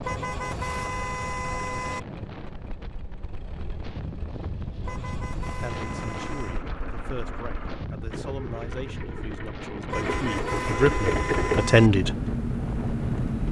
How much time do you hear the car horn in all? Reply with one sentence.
You can hear the car horn for 6 seconds altogether.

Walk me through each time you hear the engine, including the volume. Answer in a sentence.
The engine can be heard from 0.1 to 13.4 s, getting louder.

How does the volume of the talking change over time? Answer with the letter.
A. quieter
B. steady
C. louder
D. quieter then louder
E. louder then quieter
C.